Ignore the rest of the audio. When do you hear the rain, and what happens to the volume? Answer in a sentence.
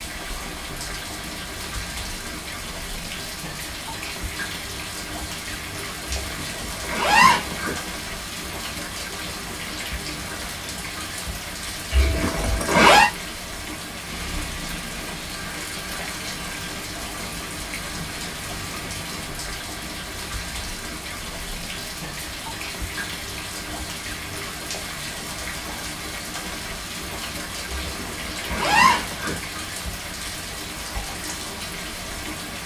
The rain can be heard from 0.0 to 32.6 s, at a steady volume.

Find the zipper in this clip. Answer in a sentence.
The zipper can be heard from 6.0 to 7.8 s, from 11.9 to 13.1 s and from 27.8 to 29.4 s.